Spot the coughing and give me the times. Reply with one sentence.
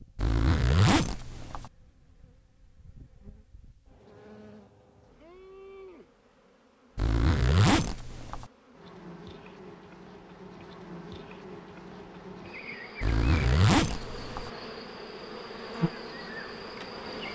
You can't hear the coughing here.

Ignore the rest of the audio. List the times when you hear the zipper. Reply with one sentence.
The zipper can be heard from 0.1 to 1.7 s, from 7.0 to 8.4 s and from 13.0 to 14.5 s.